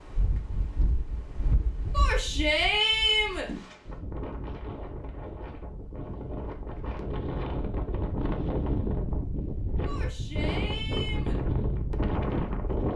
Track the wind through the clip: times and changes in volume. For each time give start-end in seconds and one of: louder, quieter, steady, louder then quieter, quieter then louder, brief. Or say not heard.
0.0-12.9 louder.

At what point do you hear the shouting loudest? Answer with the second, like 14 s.
3 s.